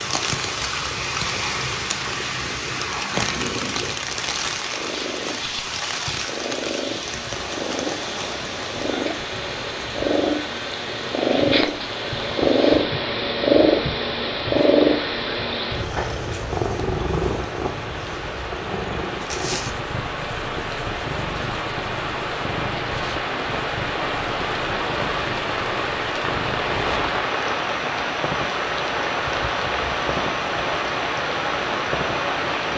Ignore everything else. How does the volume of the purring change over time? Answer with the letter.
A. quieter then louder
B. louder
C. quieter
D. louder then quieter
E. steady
D.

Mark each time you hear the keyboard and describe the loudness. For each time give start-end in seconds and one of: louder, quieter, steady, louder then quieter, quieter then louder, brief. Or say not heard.
not heard.